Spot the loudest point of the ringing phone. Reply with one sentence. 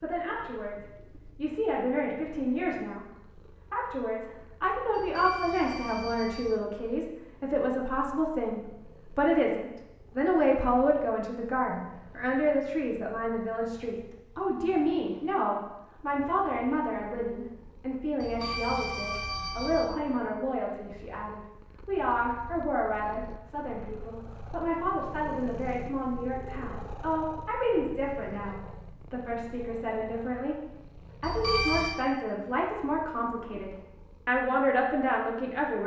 The loudest moment of the ringing phone is at 32 seconds.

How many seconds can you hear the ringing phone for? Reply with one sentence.
You can hear the ringing phone for 4 seconds altogether.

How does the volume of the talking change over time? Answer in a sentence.
The loudness of the talking stays about the same.